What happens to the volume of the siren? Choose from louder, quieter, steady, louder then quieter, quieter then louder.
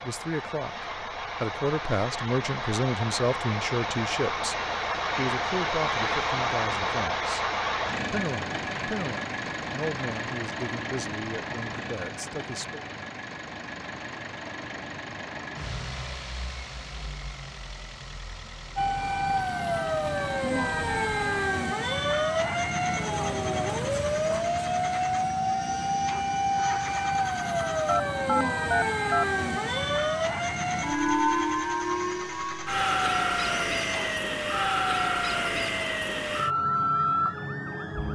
steady.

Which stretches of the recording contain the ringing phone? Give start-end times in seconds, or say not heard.
27.9-29.2.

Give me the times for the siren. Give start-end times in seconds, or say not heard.
18.8-38.1.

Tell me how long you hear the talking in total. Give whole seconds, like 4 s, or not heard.
12 s.